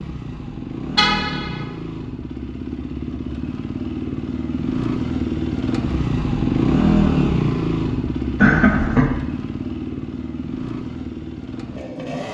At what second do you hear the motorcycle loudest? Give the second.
7 s.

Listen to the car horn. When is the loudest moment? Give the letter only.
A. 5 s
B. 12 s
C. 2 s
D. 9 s
D.